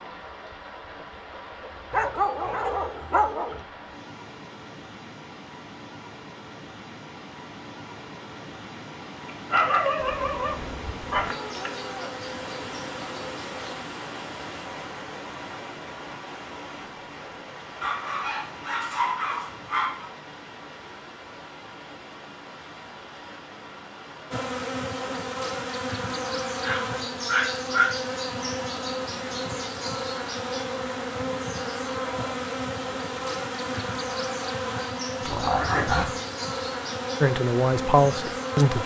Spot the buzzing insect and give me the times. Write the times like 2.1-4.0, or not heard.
9.9-13.8, 24.3-38.8.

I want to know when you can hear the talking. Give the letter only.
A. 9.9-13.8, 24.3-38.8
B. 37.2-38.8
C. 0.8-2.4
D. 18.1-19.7
B.